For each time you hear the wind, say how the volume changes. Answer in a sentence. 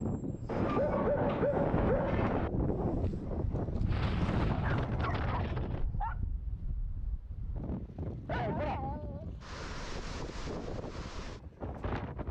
You can hear the wind from 0.0 to 12.2 s, getting quieter.